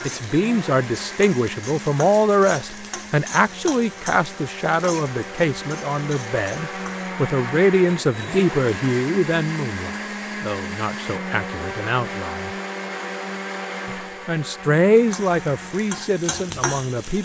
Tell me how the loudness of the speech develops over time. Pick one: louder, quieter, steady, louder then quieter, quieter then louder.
quieter then louder.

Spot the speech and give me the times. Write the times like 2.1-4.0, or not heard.
0.0-12.5, 13.8-17.1.